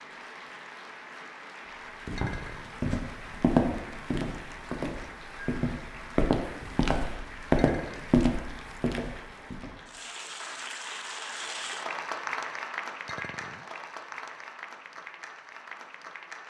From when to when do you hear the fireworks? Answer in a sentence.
The fireworks can't be heard in this clip.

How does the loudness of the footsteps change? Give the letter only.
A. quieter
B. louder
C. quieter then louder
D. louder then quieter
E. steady
C.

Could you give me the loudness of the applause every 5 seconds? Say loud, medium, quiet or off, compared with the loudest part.
medium, medium, loud, medium.